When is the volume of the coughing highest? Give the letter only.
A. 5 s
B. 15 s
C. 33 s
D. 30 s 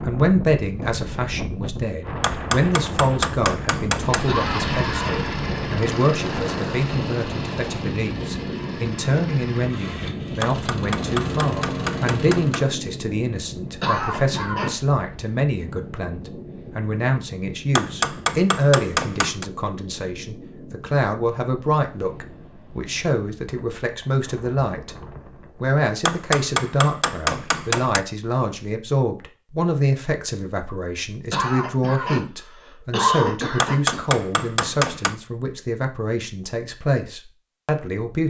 C.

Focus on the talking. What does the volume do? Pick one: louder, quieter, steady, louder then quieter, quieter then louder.
steady.